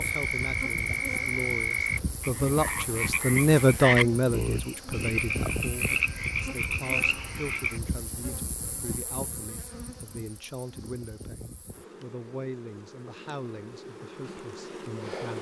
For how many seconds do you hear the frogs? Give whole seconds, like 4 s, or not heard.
8 s.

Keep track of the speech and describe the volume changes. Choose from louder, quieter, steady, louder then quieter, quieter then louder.
louder then quieter.